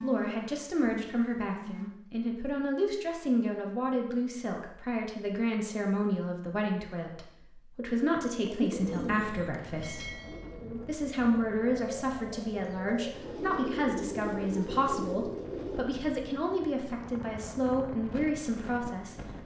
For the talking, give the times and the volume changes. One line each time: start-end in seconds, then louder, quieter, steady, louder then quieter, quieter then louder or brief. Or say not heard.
0.0-10.1 steady
10.8-19.1 steady.